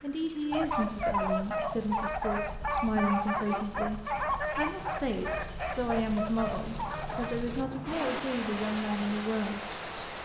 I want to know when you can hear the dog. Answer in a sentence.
You can hear the dog from 0.5 to 7.4 s.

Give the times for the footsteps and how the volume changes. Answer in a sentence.
You can't hear the footsteps here.